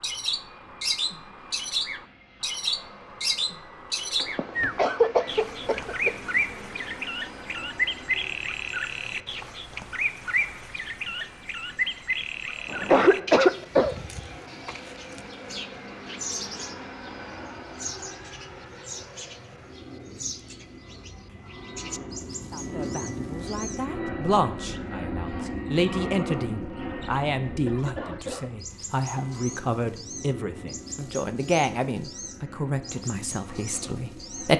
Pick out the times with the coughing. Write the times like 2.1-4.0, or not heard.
4.2-6.2, 12.7-13.9, 27.6-28.5.